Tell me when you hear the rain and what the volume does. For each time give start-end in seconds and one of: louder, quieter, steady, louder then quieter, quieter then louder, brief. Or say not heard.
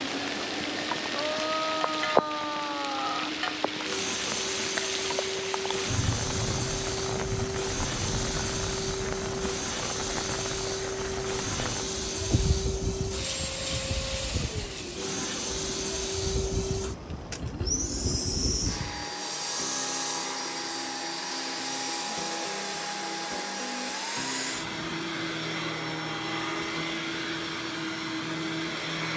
0.0-19.1 quieter.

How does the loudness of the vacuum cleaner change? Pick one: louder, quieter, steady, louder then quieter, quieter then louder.
steady.